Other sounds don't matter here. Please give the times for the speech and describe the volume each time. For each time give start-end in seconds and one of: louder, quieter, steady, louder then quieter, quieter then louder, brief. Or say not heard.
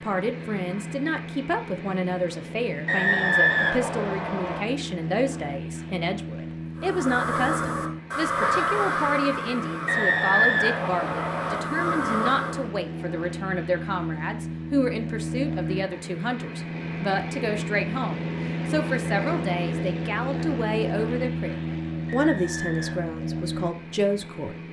0.0-24.6 steady.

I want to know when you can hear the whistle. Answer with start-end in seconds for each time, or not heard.
2.9-4.6, 9.8-11.6, 22.1-23.1.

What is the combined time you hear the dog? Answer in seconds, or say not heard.
not heard.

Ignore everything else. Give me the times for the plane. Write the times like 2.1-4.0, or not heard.
0.0-24.6.